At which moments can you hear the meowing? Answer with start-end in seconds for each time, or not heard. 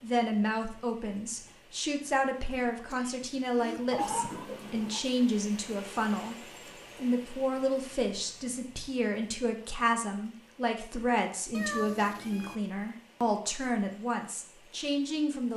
3.9-5.0, 11.5-12.6.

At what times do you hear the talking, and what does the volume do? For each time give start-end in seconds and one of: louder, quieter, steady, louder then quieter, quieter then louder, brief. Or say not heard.
0.0-15.5 steady.